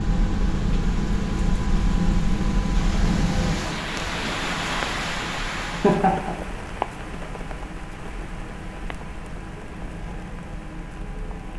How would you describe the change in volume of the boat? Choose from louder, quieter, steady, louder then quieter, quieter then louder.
quieter.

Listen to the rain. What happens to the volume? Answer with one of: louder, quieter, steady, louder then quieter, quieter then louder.
louder then quieter.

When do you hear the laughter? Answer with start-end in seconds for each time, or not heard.
5.7-6.5.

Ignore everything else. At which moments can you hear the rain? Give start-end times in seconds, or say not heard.
0.0-11.5.